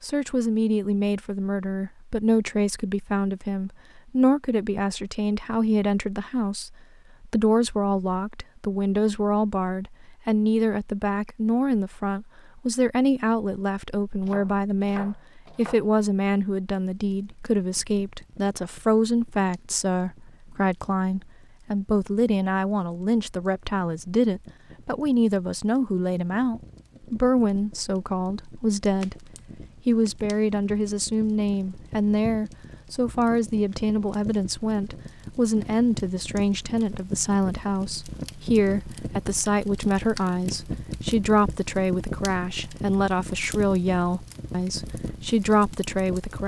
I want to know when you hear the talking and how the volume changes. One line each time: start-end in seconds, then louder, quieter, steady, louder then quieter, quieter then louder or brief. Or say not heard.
0.0-46.4 steady.